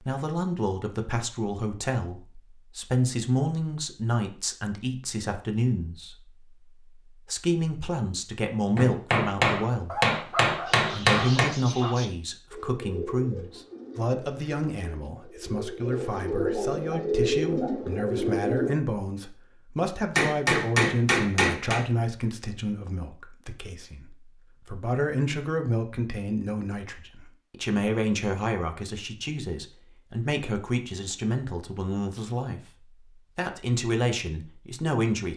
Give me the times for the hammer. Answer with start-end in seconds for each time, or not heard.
8.8-11.5, 20.1-21.8.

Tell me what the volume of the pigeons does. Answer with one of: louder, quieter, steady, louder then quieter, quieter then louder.
quieter then louder.